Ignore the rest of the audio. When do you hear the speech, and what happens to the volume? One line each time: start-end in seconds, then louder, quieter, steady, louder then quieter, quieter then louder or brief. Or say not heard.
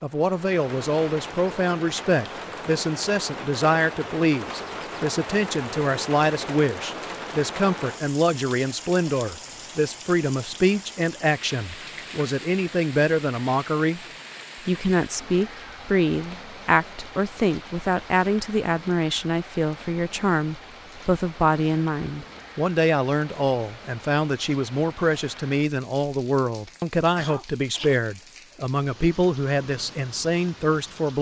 0.0-14.0 steady
14.7-31.1 steady.